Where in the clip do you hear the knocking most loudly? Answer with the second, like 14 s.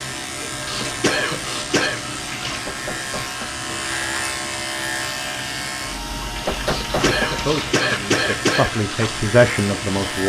7 s.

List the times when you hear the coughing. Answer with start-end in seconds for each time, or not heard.
0.7-2.0, 6.7-8.7.